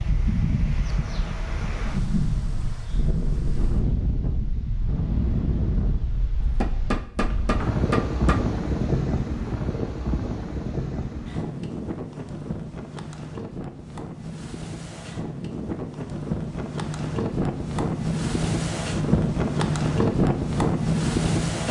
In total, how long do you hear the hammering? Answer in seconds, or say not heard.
2 s.